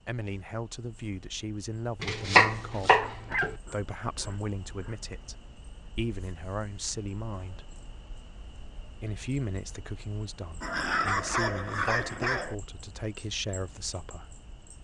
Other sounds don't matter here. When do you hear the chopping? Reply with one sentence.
You can hear the chopping from 2.0 to 3.5 s.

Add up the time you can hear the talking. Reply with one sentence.
You can hear the talking for 13 seconds altogether.